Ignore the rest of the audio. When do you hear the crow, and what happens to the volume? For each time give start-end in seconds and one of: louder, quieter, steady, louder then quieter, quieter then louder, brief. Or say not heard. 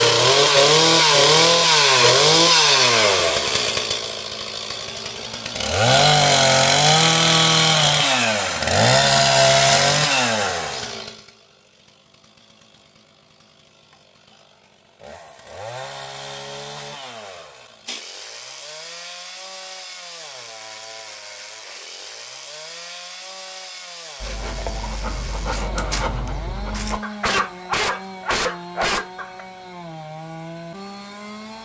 not heard.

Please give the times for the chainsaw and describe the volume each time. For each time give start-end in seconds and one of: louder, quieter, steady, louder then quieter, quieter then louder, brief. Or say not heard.
0.0-31.6 quieter.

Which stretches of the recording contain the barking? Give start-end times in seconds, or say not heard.
24.2-29.4.